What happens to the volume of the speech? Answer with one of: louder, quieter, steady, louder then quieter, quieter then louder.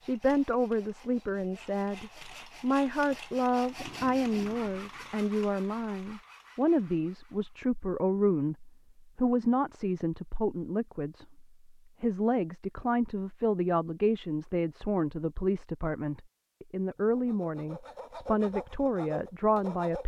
steady.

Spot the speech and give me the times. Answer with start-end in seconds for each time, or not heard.
0.0-20.0.